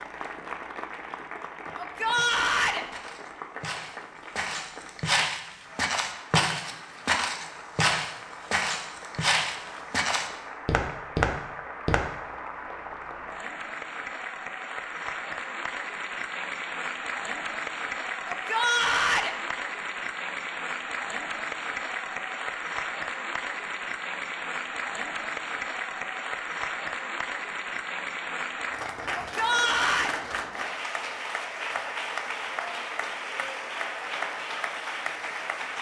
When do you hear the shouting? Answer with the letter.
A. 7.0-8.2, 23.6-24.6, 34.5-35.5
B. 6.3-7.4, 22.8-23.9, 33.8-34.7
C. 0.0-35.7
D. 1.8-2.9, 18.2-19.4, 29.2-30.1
D.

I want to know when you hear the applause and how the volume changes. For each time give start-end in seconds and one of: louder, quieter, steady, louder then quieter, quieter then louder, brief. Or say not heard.
0.0-35.7 louder.